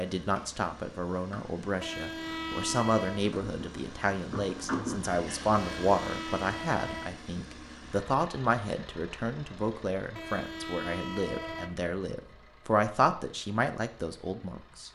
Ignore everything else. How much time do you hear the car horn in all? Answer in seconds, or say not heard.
5 s.